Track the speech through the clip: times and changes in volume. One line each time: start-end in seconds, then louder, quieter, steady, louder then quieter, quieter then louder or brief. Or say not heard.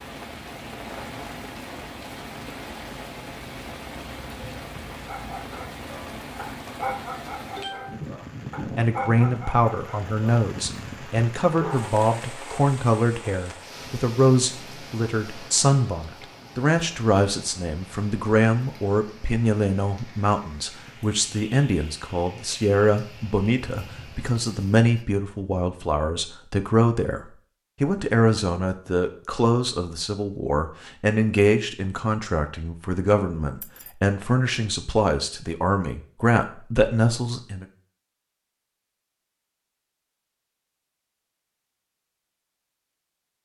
8.8-37.6 steady.